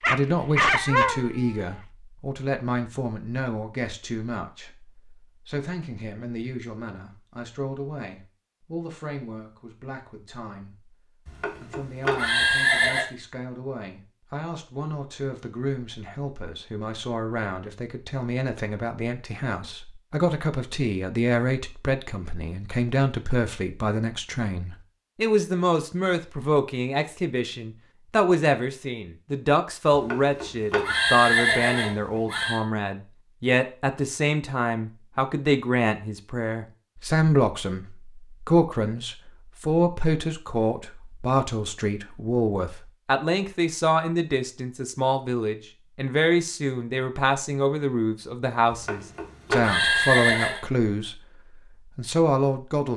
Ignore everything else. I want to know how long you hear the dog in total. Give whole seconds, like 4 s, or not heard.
2 s.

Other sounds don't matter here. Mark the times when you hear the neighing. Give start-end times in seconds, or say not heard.
11.2-13.1, 29.9-32.6, 48.7-50.6.